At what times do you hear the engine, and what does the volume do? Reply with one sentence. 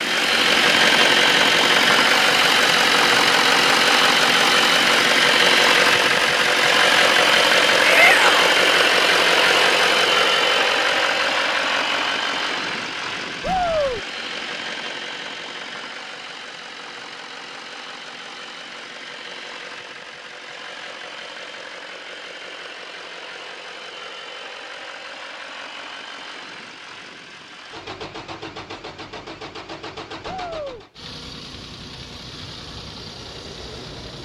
You can hear the engine from 0.0 to 34.2 s, getting quieter.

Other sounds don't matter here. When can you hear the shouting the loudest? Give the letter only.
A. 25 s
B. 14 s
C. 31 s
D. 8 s
D.